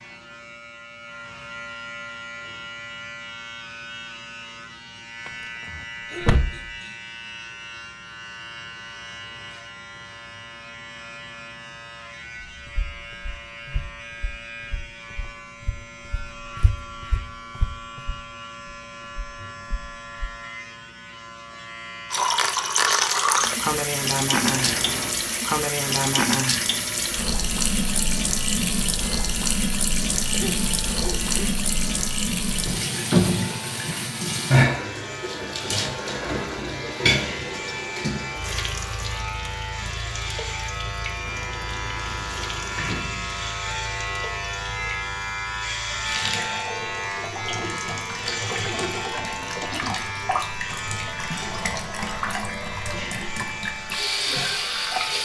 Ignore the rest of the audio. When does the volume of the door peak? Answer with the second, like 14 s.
6 s.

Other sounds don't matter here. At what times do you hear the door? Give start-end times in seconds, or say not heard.
5.2-6.7, 24.4-25.1, 41.2-43.6.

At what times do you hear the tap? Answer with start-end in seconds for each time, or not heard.
22.1-55.2.